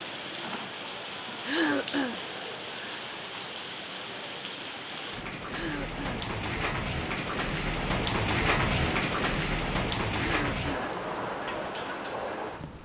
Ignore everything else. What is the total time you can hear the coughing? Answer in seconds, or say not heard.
2 s.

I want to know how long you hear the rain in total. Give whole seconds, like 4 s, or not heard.
13 s.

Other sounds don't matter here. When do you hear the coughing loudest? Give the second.
2 s.